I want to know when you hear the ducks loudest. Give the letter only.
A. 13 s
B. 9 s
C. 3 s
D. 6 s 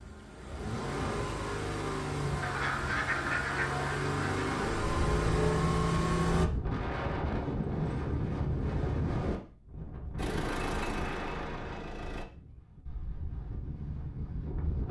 C.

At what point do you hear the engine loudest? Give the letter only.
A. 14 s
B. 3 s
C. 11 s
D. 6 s
D.